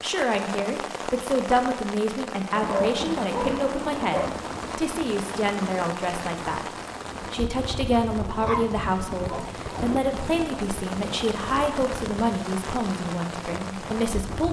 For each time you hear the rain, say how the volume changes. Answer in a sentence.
You can hear the rain from 0.0 to 14.4 s, at a steady volume.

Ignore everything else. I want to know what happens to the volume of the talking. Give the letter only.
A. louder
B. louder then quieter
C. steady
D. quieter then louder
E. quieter
C.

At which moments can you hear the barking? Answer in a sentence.
You can hear the barking from 2.5 to 4.3 s and from 8.3 to 9.7 s.